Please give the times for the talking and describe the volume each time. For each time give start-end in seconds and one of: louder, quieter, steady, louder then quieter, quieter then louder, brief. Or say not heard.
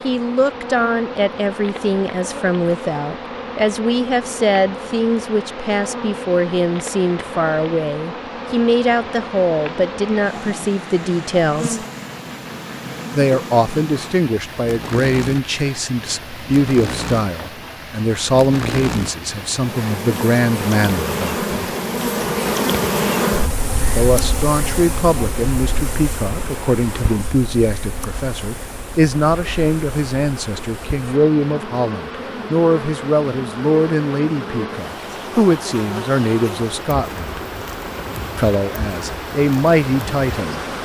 0.0-11.8 steady
13.2-21.4 steady
23.9-37.4 steady
38.4-40.6 brief.